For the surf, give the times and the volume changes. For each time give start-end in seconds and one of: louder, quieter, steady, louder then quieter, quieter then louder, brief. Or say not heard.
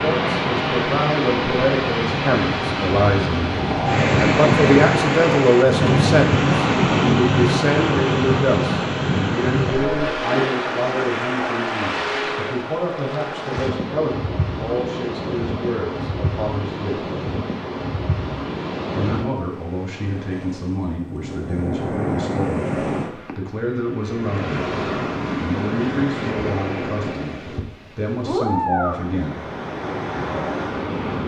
0.0-31.2 quieter.